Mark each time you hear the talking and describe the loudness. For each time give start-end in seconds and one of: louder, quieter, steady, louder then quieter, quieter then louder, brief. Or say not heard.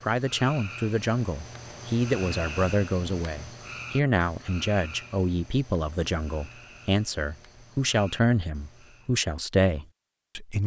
0.0-10.6 steady.